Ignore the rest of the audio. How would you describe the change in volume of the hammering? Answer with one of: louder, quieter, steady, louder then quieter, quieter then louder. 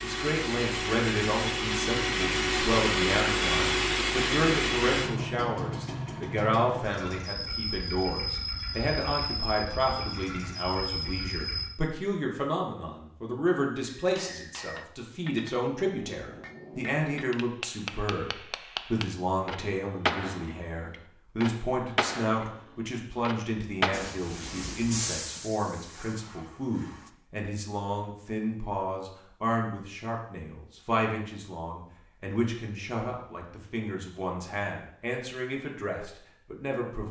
louder.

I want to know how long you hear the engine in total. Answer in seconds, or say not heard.
12 s.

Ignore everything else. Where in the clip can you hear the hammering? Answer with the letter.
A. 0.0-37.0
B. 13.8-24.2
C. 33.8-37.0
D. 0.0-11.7
B.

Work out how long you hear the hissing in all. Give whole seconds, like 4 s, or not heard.
3 s.